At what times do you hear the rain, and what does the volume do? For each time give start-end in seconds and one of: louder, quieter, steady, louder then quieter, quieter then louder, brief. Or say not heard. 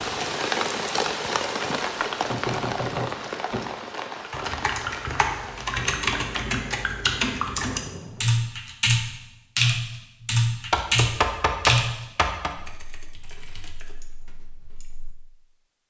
0.0-8.4 quieter.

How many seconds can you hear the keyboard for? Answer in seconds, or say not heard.
11 s.